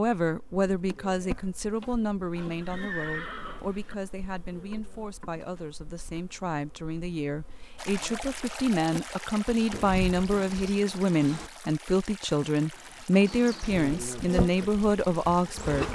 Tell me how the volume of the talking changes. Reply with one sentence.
The volume of the talking goes down, then up.